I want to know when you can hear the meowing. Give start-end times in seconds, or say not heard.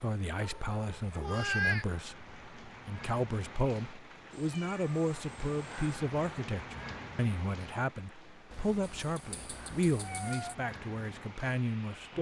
0.4-1.9, 4.3-6.0, 8.5-10.6.